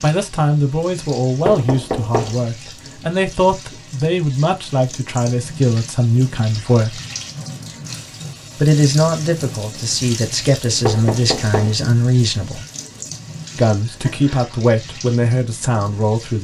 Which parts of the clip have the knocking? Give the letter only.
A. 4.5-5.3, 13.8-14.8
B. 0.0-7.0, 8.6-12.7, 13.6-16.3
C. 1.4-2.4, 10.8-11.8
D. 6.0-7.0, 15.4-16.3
C.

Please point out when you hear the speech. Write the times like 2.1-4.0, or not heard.
0.0-7.0, 8.6-12.7, 13.6-16.3.